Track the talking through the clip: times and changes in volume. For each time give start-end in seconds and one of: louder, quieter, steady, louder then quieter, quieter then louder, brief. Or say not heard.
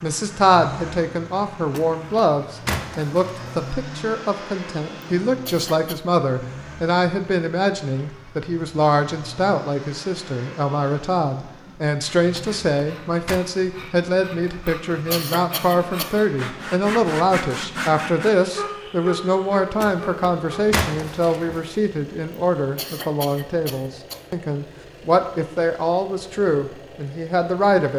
0.0-27.9 steady.